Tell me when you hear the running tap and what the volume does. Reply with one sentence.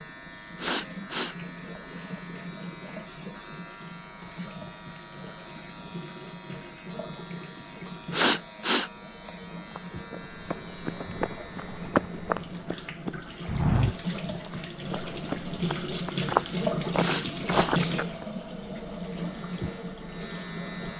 You can hear the running tap from 0.0 to 20.9 s, getting louder.